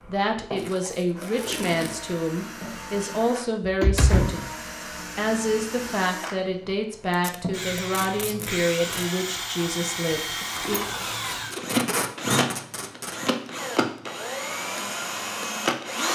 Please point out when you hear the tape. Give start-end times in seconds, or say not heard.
0.6-2.1, 7.1-9.1, 11.2-13.2.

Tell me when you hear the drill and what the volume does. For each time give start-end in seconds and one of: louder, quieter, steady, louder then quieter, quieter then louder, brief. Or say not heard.
0.0-16.1 louder.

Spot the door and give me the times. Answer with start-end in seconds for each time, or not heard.
3.8-4.5, 10.4-11.5.